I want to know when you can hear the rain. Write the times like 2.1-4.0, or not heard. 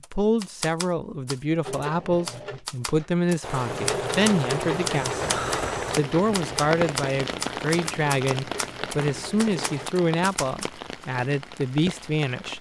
3.4-12.5.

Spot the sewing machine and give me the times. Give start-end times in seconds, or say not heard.
1.6-9.9.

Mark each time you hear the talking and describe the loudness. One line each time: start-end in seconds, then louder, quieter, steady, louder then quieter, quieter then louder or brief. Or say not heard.
0.1-12.5 steady.